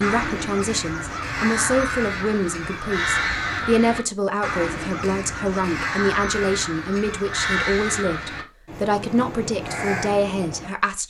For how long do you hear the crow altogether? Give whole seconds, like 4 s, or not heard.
11 s.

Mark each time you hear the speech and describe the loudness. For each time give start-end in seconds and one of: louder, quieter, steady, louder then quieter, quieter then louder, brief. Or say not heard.
0.0-11.0 steady.